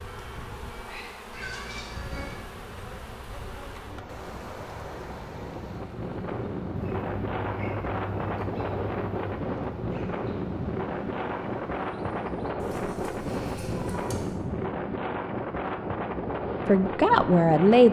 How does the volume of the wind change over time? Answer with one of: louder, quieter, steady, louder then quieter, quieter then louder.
louder.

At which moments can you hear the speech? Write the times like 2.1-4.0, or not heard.
16.6-17.8.